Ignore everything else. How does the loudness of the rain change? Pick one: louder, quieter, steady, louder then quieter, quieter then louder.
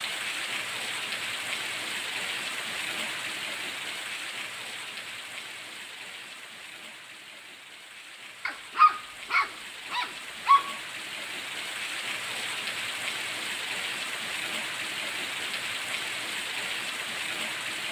quieter then louder.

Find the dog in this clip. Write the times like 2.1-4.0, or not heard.
8.4-10.8.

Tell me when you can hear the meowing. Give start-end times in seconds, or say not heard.
not heard.